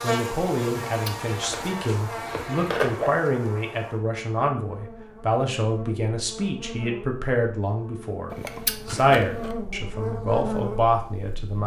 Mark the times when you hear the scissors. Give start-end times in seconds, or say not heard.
0.7-3.1, 8.3-9.5.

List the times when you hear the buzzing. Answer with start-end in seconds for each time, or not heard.
0.0-11.6.